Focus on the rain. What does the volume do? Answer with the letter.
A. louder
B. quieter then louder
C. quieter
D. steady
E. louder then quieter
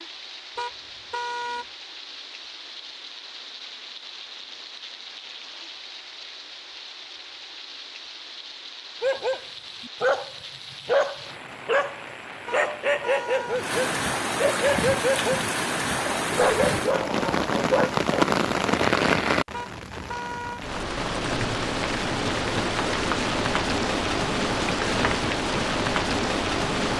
A.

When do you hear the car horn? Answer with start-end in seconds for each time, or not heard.
0.6-1.6, 12.4-13.6, 19.5-20.6.